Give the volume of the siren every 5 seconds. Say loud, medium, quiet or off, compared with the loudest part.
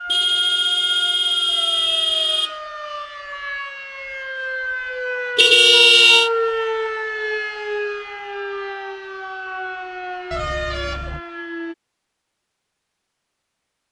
medium, loud, medium.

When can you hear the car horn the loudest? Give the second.
6 s.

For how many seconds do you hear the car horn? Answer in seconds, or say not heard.
4 s.